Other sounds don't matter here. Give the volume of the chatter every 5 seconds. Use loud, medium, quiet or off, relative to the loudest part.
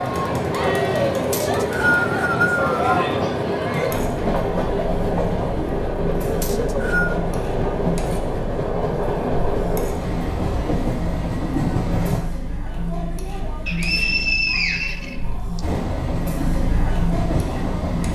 loud, medium, medium, loud.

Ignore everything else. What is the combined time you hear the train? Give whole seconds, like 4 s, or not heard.
15 s.